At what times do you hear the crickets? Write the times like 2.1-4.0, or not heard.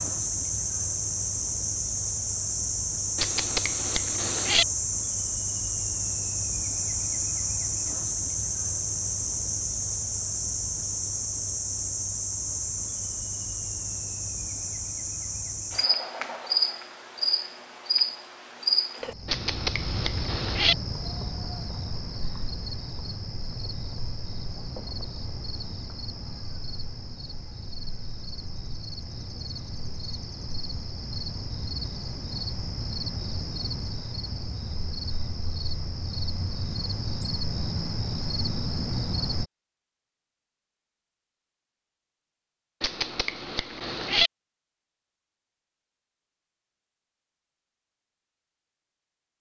0.0-39.5.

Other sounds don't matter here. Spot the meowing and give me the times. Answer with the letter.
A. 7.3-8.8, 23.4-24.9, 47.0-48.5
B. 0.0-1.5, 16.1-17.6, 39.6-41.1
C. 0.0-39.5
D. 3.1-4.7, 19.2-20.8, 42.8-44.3
D.